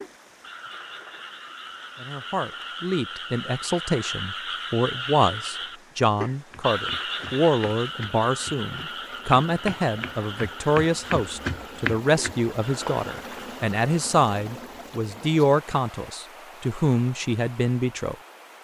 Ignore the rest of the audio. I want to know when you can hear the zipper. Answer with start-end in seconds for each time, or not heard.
not heard.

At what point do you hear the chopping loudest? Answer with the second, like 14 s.
12 s.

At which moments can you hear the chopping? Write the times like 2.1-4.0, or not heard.
6.5-13.1.